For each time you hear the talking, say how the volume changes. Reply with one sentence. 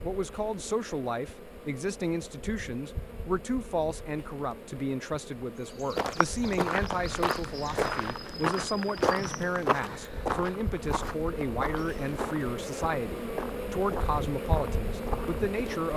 You can hear the talking from 0.0 to 15.9 s, at a steady volume.